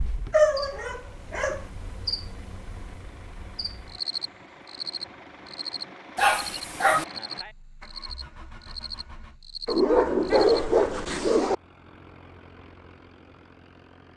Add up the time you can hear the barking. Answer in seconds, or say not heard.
4 s.